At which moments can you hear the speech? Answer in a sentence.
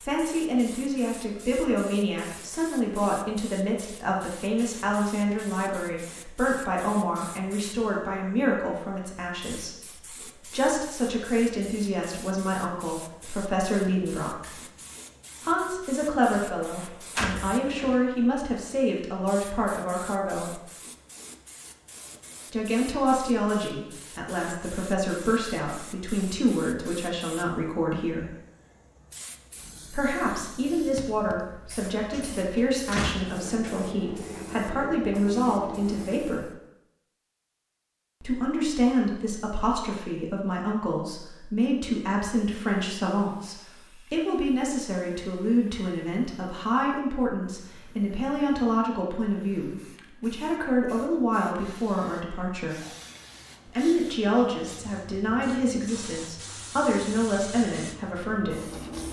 You can hear the speech from 0.0 to 14.6 s, from 15.4 to 20.6 s, from 22.5 to 28.3 s, from 29.9 to 36.5 s, from 38.2 to 52.8 s and from 53.6 to 58.7 s.